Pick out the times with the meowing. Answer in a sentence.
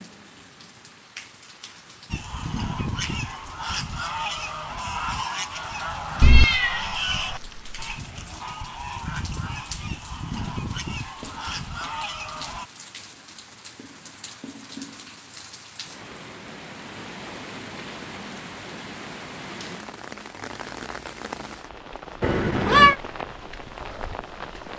You can hear the meowing from 6.2 to 7.8 s and from 22.2 to 22.9 s.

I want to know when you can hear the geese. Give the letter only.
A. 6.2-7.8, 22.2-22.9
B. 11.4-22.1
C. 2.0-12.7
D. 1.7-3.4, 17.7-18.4
C.